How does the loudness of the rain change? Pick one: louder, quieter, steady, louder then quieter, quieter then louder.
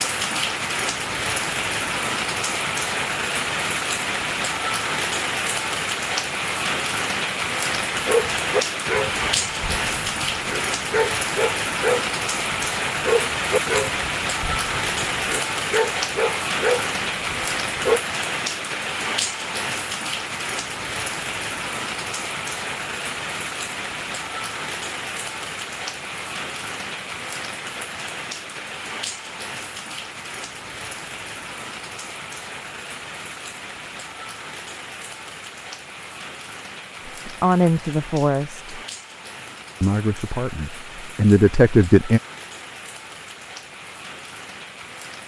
quieter.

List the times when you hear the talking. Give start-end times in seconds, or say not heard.
37.0-38.8, 39.8-42.2.